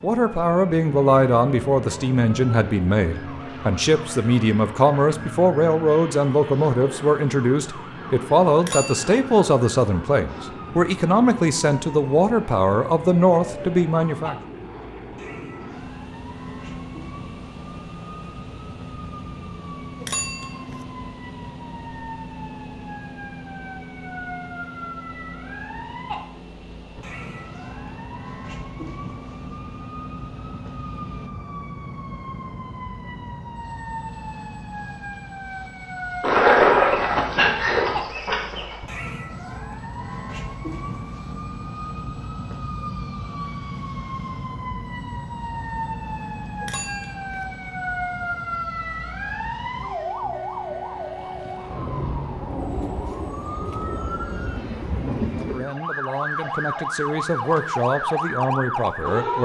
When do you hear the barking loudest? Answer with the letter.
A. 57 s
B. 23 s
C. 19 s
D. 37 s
D.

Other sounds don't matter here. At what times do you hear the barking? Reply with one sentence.
The barking can be heard from 36.2 to 38.8 s.